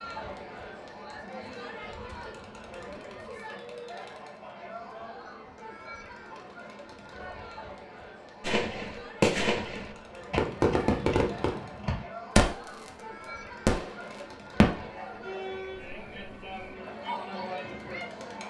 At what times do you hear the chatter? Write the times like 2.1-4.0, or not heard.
0.0-18.4.